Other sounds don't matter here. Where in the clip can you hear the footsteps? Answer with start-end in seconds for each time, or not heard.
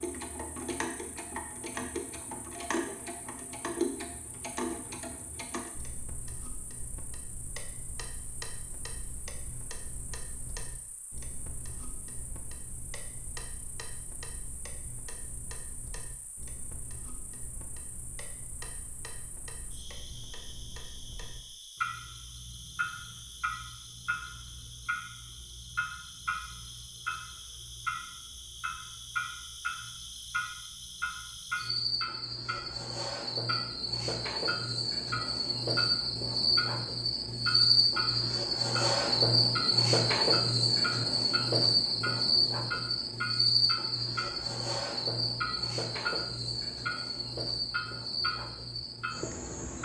not heard.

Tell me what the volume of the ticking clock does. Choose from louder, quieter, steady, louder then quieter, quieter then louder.
quieter then louder.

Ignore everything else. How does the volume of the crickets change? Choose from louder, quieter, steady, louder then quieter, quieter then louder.
louder.